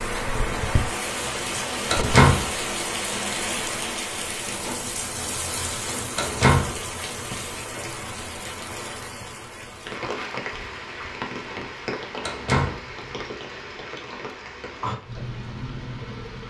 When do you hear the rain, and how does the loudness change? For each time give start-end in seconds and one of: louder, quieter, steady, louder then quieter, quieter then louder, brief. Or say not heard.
0.0-16.4 quieter.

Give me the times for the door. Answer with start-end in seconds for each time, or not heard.
1.9-2.5, 6.2-6.8, 12.2-12.8.